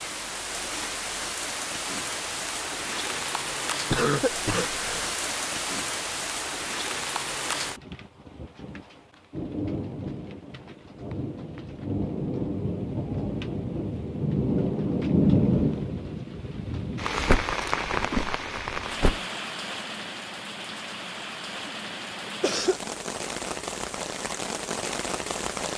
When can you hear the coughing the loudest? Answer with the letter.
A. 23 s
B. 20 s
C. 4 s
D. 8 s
C.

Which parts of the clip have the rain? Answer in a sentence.
You can hear the rain from 0.0 to 25.7 s.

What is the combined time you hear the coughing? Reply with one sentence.
You can hear the coughing for 2 seconds altogether.